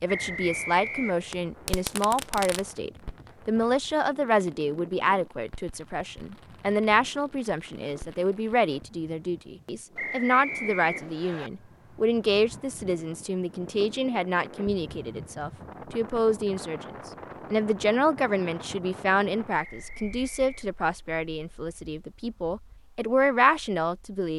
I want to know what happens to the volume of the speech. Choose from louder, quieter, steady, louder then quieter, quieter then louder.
steady.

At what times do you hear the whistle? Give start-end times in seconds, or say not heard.
0.1-1.3, 9.9-11.5, 19.6-20.8.